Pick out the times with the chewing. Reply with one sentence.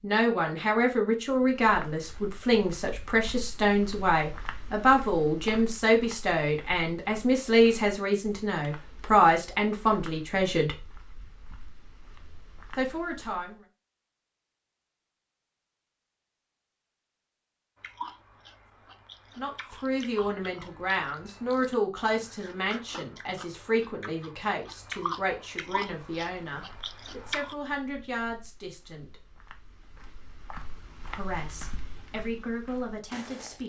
You can hear the chewing from 17.8 to 27.6 s.